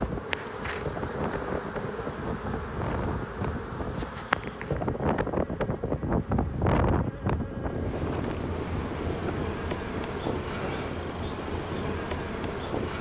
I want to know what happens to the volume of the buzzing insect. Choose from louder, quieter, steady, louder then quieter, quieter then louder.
quieter then louder.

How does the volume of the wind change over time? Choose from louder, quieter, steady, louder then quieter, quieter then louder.
louder then quieter.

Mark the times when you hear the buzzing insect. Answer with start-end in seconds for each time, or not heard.
0.0-12.9.